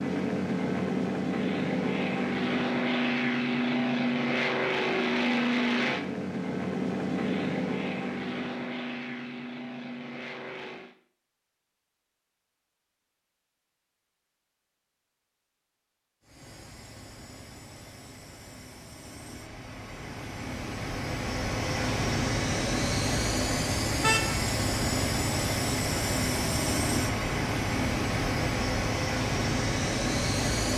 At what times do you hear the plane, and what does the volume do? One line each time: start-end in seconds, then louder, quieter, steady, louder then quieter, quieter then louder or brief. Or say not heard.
0.0-10.9 quieter
16.2-30.7 louder.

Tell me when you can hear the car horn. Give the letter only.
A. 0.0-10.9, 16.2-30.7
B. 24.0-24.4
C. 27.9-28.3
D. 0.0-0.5
B.